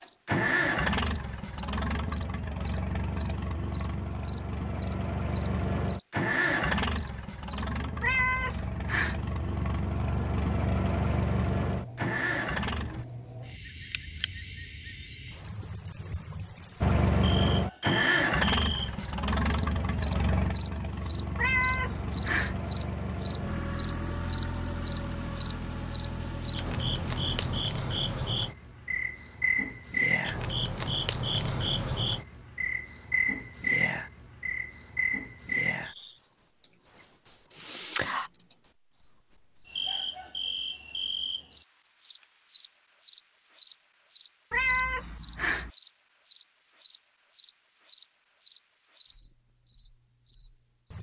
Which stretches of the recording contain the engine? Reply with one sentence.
You can hear the engine from 0.0 to 13.1 s and from 16.8 to 27.6 s.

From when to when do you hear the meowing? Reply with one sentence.
You can hear the meowing from 8.0 to 9.2 s, from 21.4 to 22.6 s and from 44.5 to 45.7 s.